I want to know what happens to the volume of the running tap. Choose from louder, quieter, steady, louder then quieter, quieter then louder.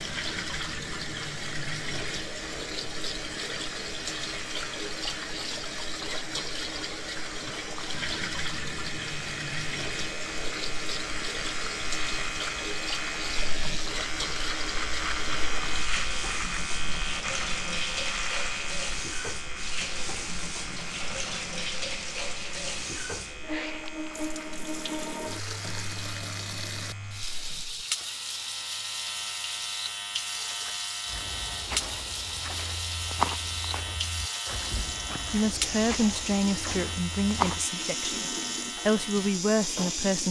steady.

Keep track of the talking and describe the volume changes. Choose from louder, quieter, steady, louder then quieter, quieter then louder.
quieter then louder.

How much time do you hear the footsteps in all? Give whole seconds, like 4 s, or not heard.
7 s.